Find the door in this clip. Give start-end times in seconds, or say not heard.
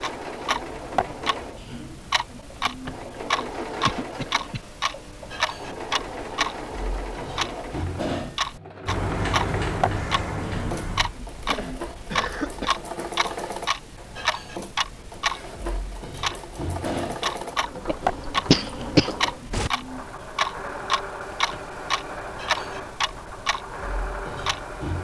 2.5-3.1, 8.8-11.2, 21.2-21.8.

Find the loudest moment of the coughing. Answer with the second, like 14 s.
19 s.